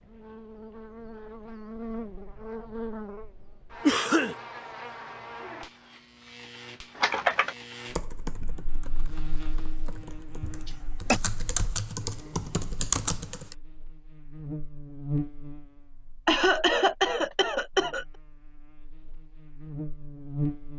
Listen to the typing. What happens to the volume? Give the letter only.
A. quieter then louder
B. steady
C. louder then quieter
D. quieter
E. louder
A.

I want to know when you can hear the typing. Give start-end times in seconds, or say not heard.
7.0-13.6.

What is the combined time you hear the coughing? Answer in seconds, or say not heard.
3 s.